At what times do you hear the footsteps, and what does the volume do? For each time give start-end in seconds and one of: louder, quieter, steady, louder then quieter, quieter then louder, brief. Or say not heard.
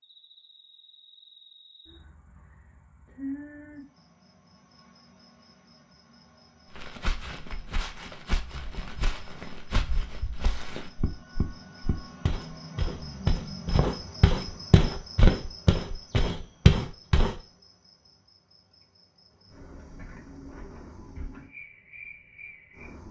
6.8-17.4 louder.